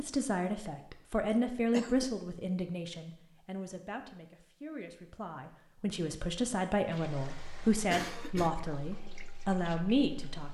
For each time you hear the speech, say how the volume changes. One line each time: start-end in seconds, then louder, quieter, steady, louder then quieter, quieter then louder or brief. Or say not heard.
0.0-10.4 quieter then louder.